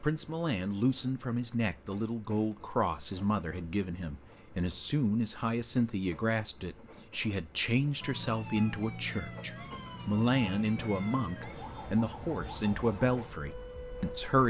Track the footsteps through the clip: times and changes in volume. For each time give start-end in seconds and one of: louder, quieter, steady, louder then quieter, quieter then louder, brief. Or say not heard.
not heard.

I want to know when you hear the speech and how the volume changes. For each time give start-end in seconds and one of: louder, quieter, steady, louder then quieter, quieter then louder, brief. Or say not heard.
0.0-14.4 steady.